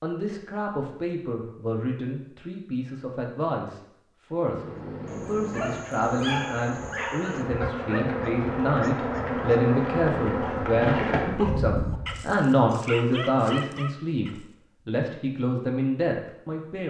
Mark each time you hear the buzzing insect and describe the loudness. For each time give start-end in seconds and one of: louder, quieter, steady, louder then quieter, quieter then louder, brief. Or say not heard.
4.5-12.3 louder.